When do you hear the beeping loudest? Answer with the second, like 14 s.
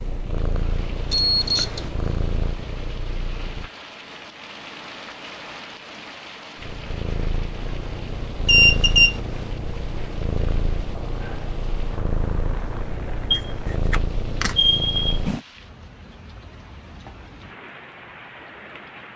9 s.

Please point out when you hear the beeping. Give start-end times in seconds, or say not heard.
1.1-1.9, 8.4-9.2, 13.3-15.2.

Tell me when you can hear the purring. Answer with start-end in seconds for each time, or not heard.
0.0-3.7, 6.5-15.4.